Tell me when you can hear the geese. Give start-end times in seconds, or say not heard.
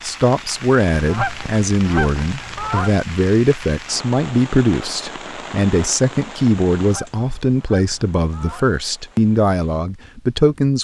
0.9-3.0, 6.8-8.8.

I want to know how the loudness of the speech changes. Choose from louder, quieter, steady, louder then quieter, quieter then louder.
steady.